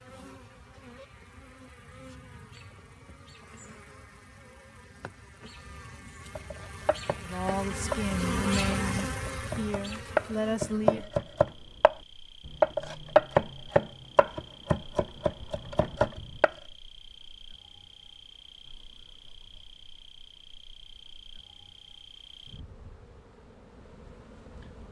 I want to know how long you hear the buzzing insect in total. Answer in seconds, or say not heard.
25 s.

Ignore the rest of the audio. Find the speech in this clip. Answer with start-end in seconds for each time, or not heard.
7.2-11.1.